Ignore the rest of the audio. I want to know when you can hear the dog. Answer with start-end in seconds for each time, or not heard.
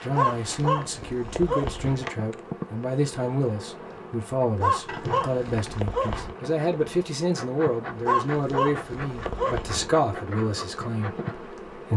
0.1-2.1, 4.6-6.3, 8.1-10.1.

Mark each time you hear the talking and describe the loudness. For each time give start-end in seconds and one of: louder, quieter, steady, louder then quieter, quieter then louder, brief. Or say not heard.
0.0-11.9 steady.